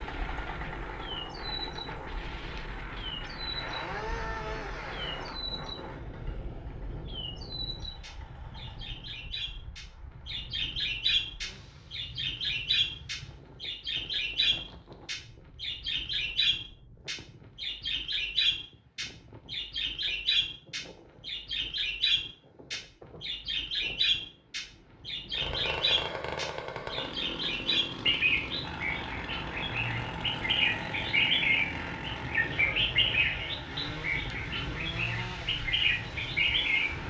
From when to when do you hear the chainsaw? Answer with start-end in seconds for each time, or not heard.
0.0-9.1, 25.3-37.0.